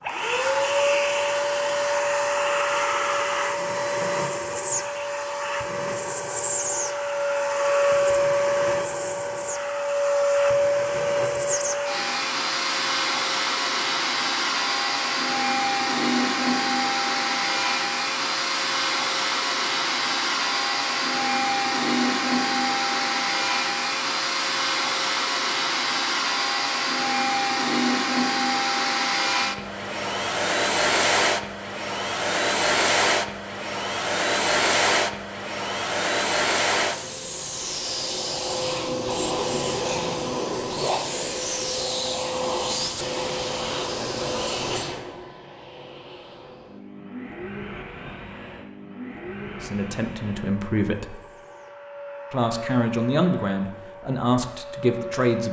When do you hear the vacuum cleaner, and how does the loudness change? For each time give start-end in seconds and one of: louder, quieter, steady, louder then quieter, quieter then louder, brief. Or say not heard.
0.0-55.4 quieter.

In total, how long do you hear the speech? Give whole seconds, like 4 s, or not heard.
5 s.